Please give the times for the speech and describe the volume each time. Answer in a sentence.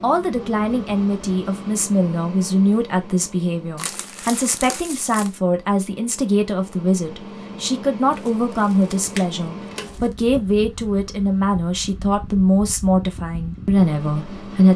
You can hear the speech from 0.0 to 14.7 s, at a steady volume.